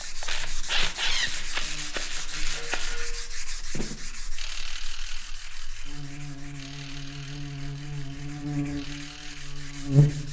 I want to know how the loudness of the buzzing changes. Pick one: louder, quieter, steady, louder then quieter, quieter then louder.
quieter then louder.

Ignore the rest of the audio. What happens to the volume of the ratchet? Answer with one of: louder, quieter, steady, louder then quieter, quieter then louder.
quieter.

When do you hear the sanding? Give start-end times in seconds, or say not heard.
0.0-10.2.